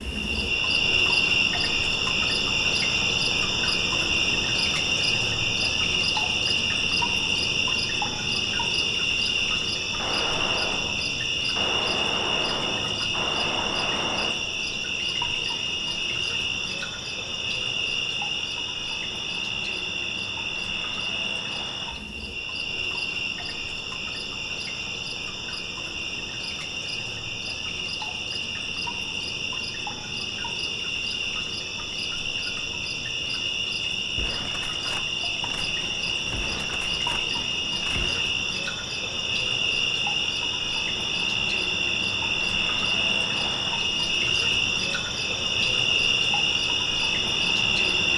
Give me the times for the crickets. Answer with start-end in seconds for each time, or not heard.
0.0-48.1.